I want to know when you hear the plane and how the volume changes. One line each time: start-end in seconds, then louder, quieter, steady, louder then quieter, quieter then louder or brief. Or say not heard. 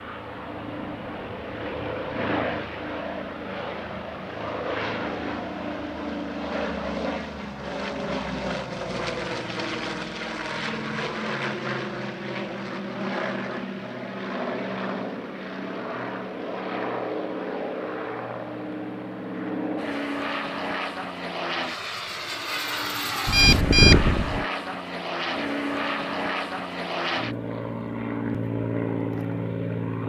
0.0-30.0 steady.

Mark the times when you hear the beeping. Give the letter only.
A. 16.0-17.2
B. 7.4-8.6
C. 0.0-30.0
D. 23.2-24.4
D.